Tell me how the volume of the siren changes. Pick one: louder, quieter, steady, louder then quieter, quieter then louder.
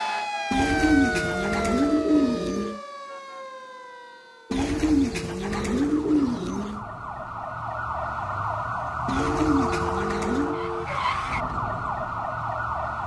quieter then louder.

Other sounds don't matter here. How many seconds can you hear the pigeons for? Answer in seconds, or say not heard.
6 s.